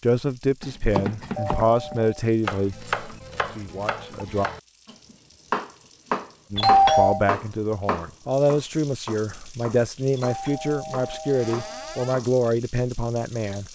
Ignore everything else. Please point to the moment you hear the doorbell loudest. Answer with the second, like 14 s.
7 s.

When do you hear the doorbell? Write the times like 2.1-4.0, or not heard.
1.4-2.1, 6.5-7.2, 10.2-12.2.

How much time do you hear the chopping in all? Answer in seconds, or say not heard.
12 s.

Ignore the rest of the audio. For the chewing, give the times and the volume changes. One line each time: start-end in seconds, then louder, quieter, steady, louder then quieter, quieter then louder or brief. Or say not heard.
not heard.